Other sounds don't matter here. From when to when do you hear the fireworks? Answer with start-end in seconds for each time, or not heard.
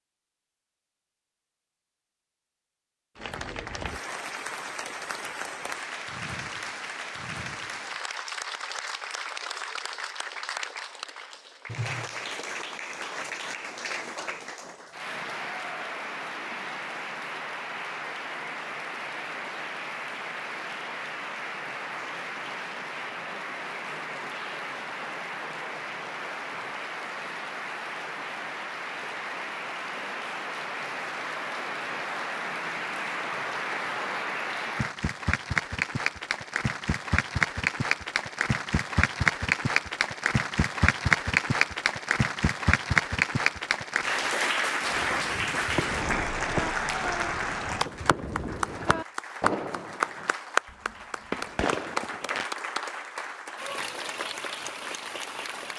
44.9-52.5.